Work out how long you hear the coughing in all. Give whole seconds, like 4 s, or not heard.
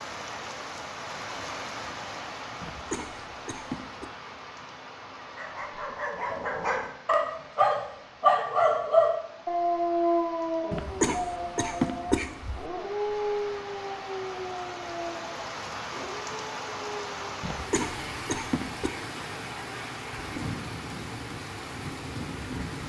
5 s.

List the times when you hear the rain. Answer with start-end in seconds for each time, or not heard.
0.0-22.8.